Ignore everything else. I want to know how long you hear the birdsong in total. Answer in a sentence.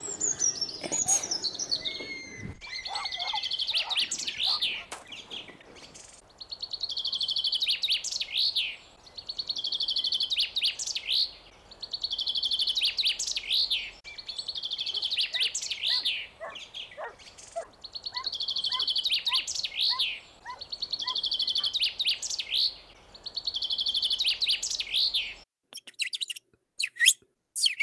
The birdsong can be heard for 28 seconds in total.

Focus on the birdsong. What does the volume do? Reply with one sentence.
The loudness of the birdsong stays about the same.